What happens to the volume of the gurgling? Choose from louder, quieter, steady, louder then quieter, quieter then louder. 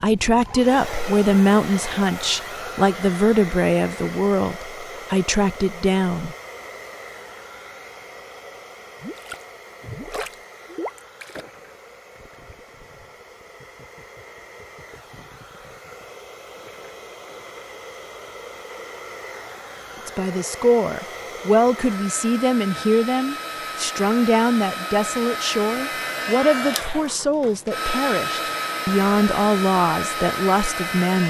quieter.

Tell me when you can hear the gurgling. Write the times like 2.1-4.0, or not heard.
9.0-17.7.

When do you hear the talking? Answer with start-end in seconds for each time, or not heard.
0.0-6.3, 20.1-31.2.